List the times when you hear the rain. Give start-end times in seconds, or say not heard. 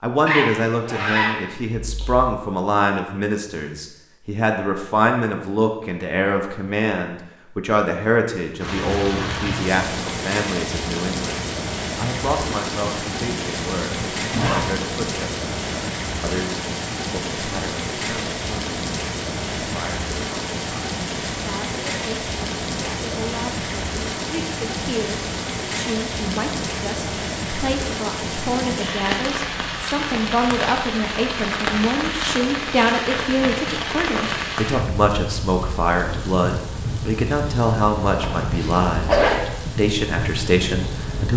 8.6-41.3.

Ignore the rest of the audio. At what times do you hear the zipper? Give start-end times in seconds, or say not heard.
0.2-2.2, 13.9-14.7, 38.2-39.4.